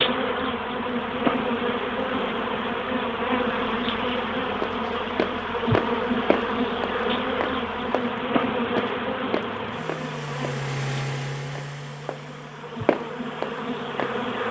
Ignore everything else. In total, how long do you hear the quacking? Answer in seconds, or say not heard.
not heard.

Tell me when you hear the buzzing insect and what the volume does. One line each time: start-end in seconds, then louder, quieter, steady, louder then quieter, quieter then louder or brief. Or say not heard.
0.0-14.4 quieter.